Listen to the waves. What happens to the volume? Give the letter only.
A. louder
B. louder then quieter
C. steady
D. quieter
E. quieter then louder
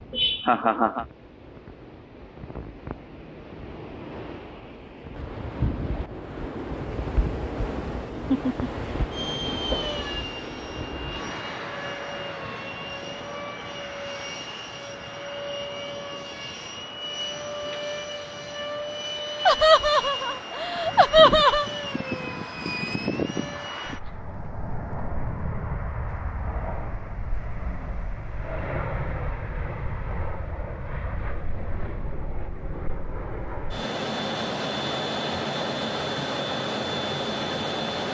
B.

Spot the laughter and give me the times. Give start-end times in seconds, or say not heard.
0.1-1.1, 19.4-21.7.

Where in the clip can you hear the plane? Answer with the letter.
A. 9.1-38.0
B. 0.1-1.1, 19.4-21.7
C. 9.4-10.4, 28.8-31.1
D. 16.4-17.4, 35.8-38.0
A.